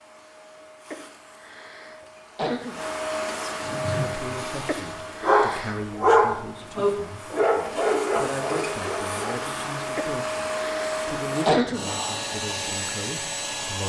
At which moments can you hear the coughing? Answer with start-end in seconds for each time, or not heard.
0.9-2.9, 4.7-5.8, 9.9-11.9.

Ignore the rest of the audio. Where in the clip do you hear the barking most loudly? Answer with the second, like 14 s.
6 s.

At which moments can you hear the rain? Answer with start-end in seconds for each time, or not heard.
not heard.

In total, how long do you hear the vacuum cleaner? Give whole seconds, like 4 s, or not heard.
14 s.